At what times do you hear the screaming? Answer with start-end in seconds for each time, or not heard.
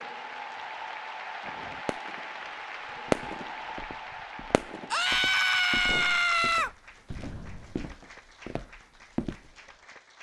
4.9-6.7.